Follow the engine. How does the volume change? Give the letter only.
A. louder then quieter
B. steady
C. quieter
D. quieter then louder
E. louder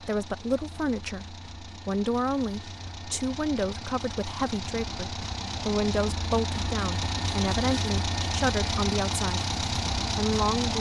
E.